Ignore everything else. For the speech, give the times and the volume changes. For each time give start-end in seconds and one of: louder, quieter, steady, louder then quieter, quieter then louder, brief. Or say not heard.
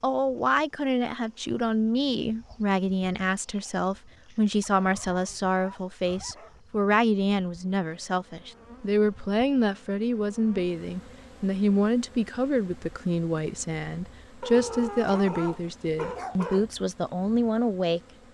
0.0-18.2 steady.